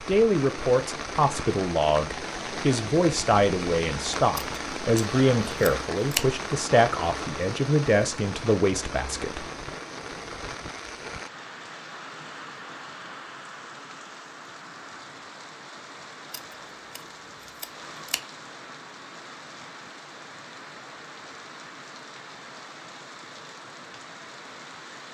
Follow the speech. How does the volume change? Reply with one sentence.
The volume of the speech stays about the same.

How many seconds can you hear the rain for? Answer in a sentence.
The rain can be heard for 25 seconds in total.